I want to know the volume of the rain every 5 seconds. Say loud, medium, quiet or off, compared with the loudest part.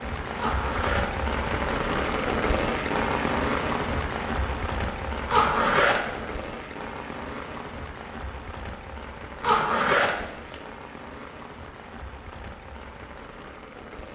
loud, medium, quiet.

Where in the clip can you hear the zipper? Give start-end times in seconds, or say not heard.
0.3-2.2, 5.3-6.1, 9.4-10.6.